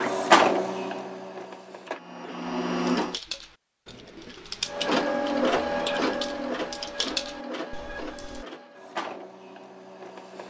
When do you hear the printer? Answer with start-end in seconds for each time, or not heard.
0.0-3.1, 4.7-10.4.